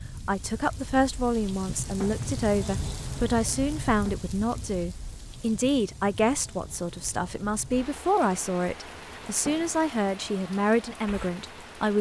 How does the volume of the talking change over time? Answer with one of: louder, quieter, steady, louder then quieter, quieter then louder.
steady.